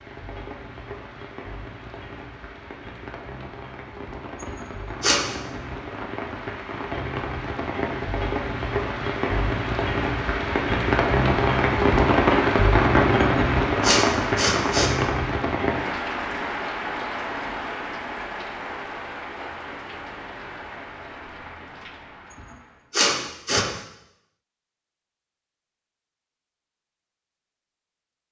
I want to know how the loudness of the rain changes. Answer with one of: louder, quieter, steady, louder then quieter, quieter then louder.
louder then quieter.